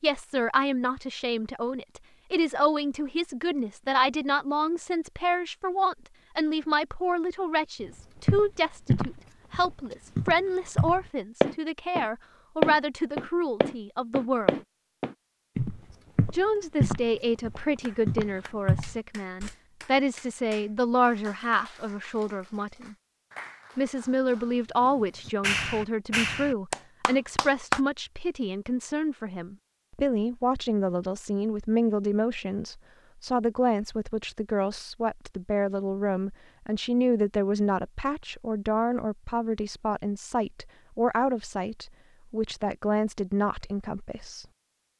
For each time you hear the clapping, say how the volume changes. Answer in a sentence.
The clapping can be heard from 17.8 to 27.8 s, getting louder.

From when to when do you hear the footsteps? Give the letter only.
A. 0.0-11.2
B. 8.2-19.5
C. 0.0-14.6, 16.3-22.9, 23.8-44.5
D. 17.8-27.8
B.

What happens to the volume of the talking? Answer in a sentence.
The loudness of the talking stays about the same.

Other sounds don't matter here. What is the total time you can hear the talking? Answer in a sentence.
The talking can be heard for 42 seconds in total.